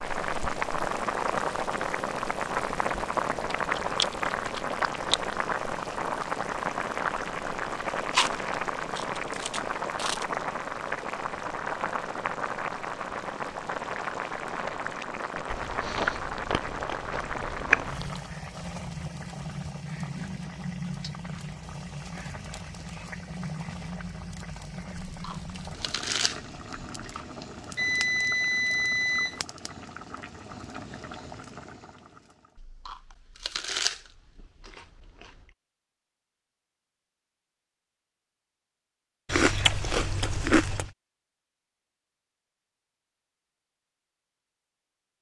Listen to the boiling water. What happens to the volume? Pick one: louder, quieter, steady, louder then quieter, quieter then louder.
quieter.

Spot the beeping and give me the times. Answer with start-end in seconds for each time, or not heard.
27.8-29.4.